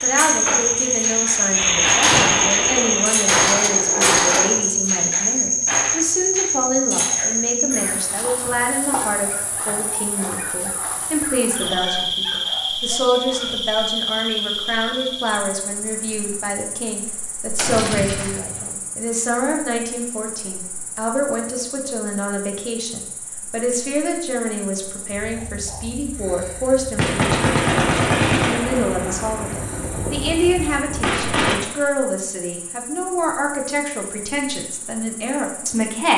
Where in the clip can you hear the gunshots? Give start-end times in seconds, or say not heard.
2.0-4.5, 17.6-18.6, 26.9-31.6.